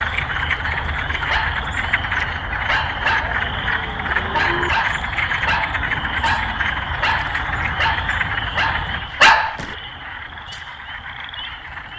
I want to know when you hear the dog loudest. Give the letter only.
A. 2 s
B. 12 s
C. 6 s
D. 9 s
D.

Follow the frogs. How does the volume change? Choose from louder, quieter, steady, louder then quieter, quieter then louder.
quieter.